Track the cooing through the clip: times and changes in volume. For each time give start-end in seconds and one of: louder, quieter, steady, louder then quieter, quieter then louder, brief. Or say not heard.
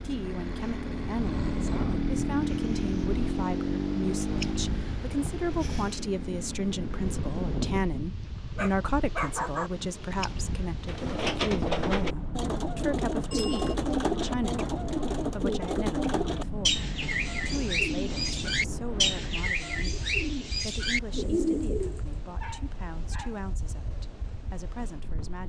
10.8-22.0 steady.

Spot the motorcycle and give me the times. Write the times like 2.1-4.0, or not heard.
0.0-7.6.